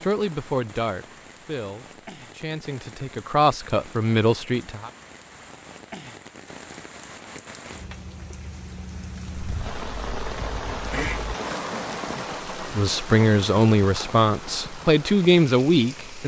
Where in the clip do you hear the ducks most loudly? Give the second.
11 s.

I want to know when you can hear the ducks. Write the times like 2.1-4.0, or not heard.
9.3-11.3.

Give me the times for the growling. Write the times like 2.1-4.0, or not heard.
11.5-12.3.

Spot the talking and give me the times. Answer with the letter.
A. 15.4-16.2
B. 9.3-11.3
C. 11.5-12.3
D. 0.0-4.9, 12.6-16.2
D.